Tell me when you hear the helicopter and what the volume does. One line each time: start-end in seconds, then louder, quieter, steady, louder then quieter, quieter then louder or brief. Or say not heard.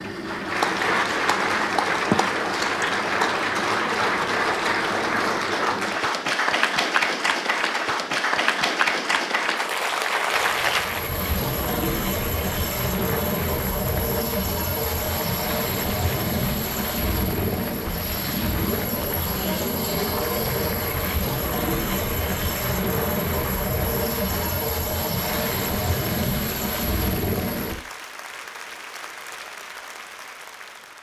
10.3-27.8 steady.